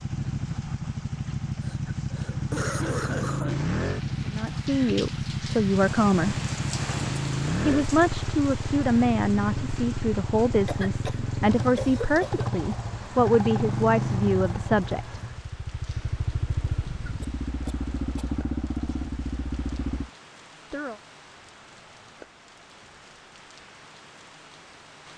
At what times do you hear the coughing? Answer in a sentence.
You can hear the coughing from 1.6 to 3.6 s, from 10.7 to 12.5 s and from 17.0 to 18.4 s.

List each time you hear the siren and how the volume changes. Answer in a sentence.
The siren can't be heard in this clip.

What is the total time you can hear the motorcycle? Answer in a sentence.
The motorcycle can be heard for 20 seconds in total.